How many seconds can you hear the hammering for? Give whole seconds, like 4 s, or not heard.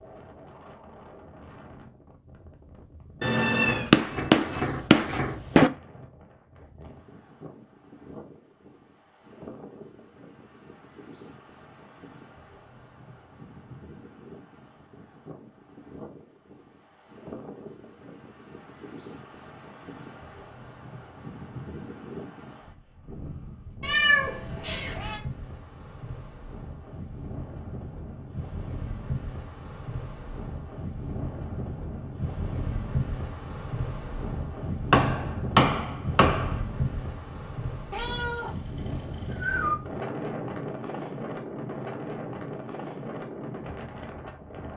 4 s.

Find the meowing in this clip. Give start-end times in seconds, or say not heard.
3.2-3.9, 23.8-25.2, 37.9-39.8.